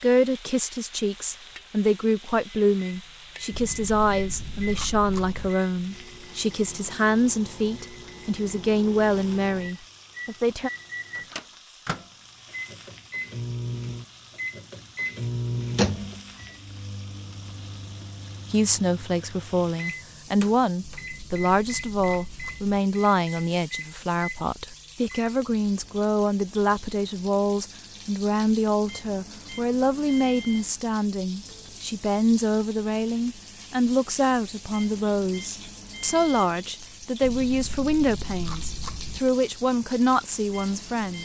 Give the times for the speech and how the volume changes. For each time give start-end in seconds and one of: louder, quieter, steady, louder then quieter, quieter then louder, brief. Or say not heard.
0.0-10.7 steady
18.5-41.2 steady.